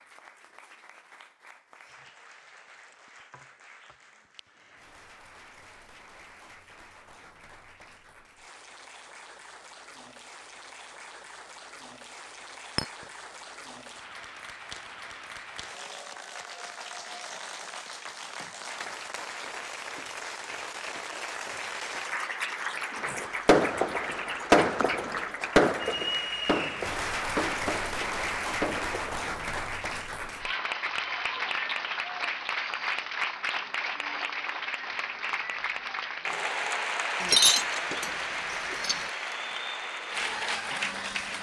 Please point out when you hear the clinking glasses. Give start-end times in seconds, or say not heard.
37.2-39.0.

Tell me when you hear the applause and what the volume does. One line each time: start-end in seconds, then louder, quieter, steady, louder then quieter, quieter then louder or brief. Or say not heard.
0.0-41.3 louder.